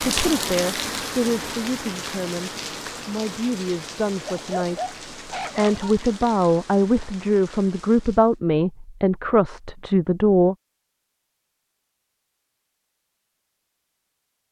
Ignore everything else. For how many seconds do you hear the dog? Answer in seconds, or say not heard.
2 s.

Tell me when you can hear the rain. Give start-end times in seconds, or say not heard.
0.0-8.4.